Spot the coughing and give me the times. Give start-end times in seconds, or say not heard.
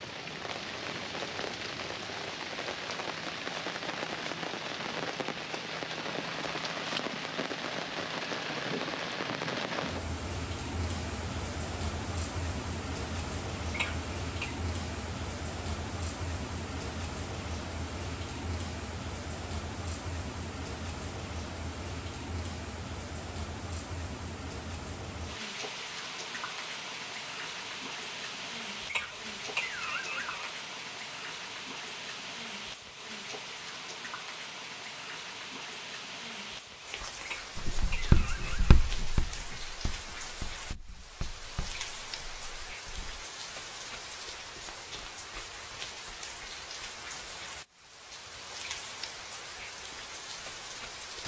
13.7-14.6, 28.9-30.5, 37.2-38.8.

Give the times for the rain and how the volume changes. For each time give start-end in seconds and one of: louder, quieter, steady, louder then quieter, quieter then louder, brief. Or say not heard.
0.0-51.2 quieter.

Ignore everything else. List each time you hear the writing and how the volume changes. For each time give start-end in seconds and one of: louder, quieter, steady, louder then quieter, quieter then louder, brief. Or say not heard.
37.5-43.2 quieter.